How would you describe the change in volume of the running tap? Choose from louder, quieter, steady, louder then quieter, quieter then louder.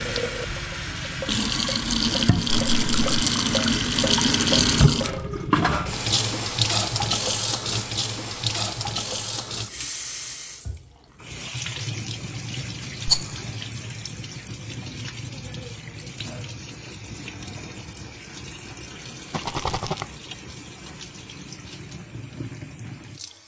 quieter.